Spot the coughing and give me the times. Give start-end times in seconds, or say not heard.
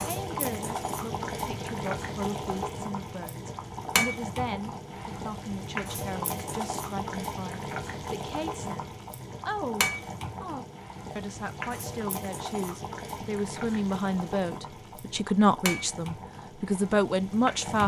not heard.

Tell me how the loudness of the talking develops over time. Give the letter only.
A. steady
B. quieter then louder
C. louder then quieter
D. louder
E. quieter
D.